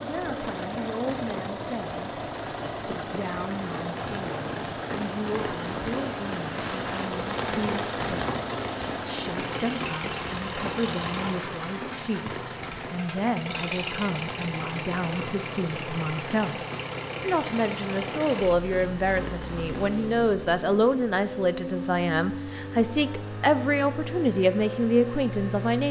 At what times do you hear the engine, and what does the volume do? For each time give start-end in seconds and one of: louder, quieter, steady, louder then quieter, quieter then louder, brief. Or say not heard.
0.0-25.8 steady.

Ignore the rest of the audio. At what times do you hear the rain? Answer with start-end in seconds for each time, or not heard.
0.0-20.1.